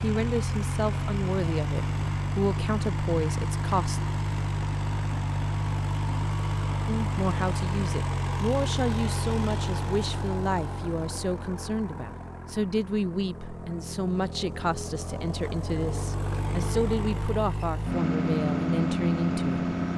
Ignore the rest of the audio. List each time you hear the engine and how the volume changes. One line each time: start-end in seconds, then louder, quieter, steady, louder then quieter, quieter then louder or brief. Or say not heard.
0.0-19.9 quieter then louder.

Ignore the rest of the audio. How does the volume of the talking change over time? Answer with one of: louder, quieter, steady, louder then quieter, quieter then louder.
steady.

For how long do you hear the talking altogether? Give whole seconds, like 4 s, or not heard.
17 s.